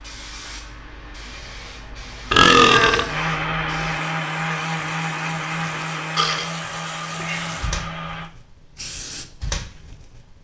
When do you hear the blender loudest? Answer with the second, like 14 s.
4 s.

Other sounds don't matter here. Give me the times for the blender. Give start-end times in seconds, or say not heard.
3.0-8.3.